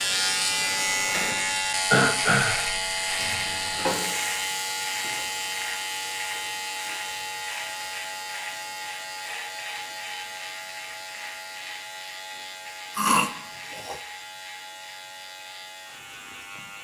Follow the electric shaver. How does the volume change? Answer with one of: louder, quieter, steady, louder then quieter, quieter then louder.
quieter.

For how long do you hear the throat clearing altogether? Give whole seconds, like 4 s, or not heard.
2 s.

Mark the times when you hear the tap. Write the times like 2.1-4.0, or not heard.
0.0-16.8.